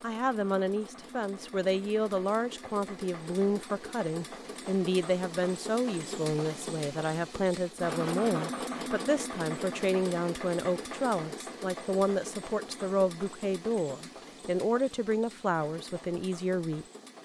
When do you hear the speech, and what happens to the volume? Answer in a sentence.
You can hear the speech from 0.0 to 16.9 s, at a steady volume.